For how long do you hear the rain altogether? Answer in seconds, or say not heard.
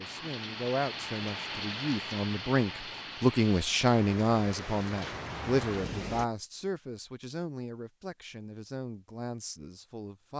6 s.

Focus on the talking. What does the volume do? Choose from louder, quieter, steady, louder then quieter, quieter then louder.
louder then quieter.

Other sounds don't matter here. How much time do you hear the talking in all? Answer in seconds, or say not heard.
10 s.